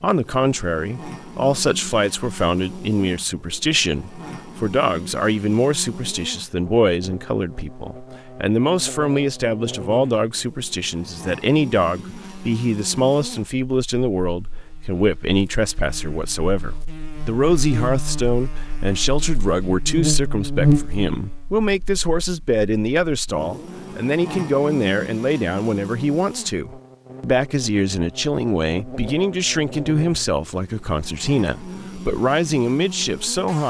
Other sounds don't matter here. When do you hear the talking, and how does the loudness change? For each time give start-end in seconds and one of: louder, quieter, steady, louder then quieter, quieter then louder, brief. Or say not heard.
0.0-33.6 steady.